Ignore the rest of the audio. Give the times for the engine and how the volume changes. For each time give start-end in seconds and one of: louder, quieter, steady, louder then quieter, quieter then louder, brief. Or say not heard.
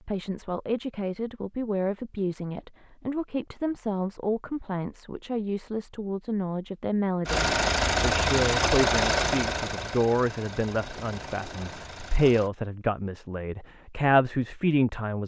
7.2-12.5 quieter.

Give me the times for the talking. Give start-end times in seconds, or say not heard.
0.1-15.2.